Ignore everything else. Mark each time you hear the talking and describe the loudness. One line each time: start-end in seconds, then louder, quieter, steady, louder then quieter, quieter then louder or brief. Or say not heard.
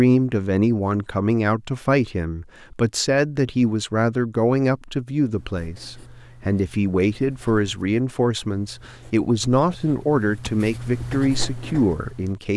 0.0-12.5 steady.